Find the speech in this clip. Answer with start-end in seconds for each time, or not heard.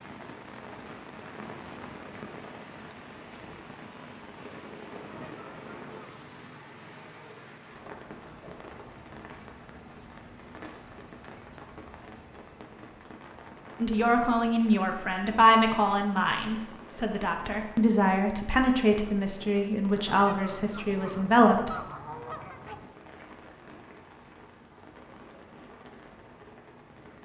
13.8-21.7.